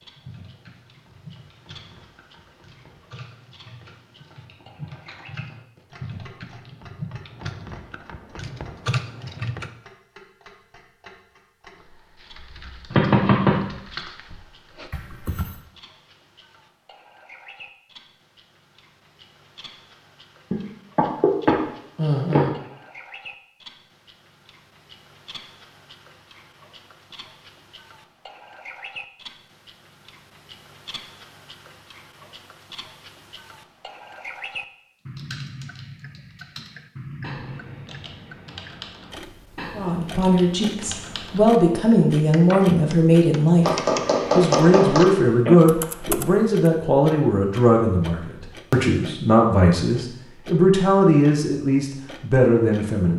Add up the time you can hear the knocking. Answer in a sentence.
The knocking can be heard for 4 seconds in total.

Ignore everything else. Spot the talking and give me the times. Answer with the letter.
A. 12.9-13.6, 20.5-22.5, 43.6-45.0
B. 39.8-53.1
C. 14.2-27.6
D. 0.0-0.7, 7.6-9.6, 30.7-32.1
B.